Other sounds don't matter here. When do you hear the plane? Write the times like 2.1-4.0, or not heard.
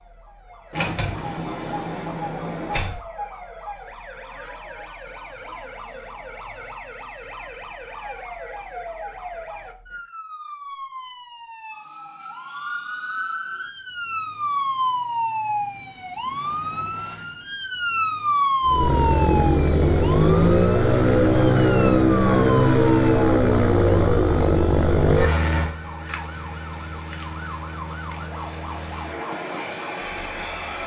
18.6-30.8.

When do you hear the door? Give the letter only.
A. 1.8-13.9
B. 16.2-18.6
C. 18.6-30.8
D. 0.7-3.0
D.